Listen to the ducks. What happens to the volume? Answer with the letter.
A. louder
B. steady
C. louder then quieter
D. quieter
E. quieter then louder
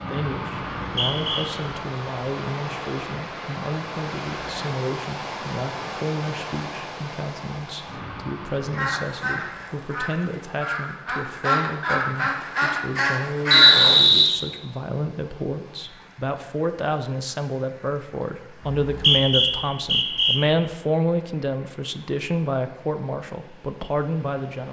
A.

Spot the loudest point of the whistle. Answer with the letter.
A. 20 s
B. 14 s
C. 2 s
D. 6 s
B.